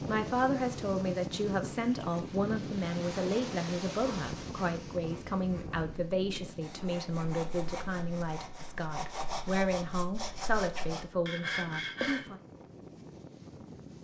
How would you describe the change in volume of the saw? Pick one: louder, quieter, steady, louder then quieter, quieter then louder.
louder.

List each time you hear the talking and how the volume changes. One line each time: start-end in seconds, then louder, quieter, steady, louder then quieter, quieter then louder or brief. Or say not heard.
0.0-12.4 steady.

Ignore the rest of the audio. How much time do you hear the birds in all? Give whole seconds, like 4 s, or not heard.
not heard.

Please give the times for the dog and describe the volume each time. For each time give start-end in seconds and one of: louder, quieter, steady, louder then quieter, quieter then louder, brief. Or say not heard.
not heard.